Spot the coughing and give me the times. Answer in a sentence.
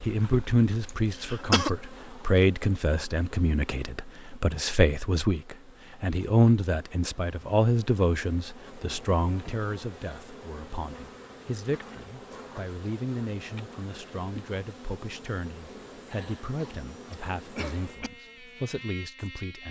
The coughing can be heard from 0.8 to 1.7 s and from 16.1 to 18.1 s.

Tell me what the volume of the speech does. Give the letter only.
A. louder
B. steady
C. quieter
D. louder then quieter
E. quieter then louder
C.